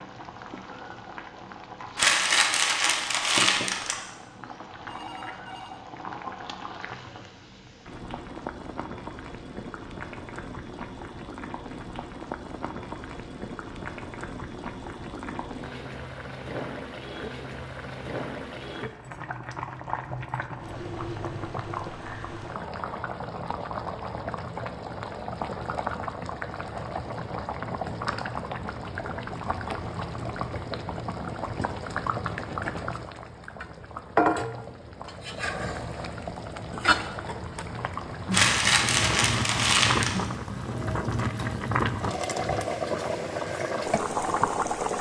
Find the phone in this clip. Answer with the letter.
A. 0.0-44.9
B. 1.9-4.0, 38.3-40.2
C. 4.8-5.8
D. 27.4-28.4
C.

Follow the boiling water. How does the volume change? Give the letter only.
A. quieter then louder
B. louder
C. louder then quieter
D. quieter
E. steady
B.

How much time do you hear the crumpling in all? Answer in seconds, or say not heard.
4 s.